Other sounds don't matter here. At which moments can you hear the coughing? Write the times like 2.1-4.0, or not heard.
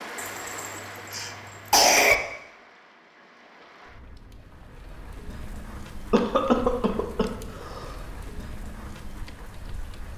0.1-2.1, 6.1-7.9.